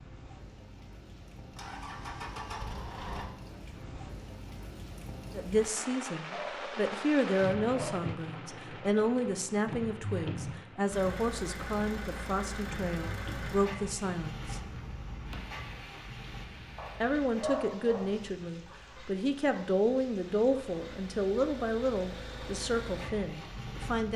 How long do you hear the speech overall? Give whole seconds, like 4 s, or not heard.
16 s.